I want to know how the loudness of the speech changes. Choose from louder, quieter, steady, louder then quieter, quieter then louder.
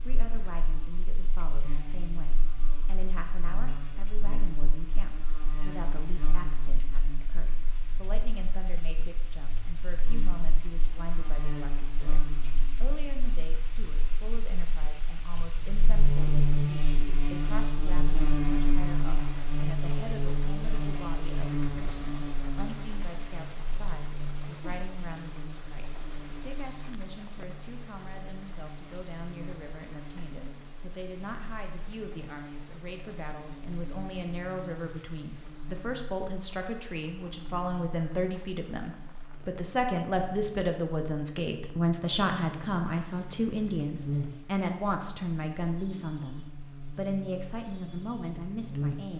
louder.